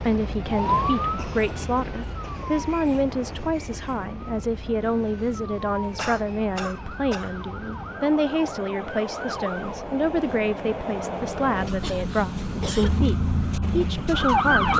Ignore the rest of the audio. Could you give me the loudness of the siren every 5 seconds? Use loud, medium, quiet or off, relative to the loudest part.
loud, medium, loud.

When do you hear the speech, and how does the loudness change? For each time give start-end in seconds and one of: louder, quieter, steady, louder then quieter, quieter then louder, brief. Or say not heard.
0.0-14.7 steady.